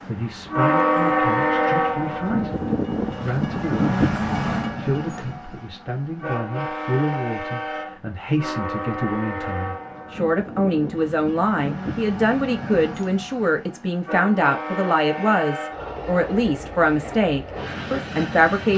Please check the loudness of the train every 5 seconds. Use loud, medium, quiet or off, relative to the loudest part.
loud, medium, medium, medium.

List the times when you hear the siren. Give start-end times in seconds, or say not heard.
not heard.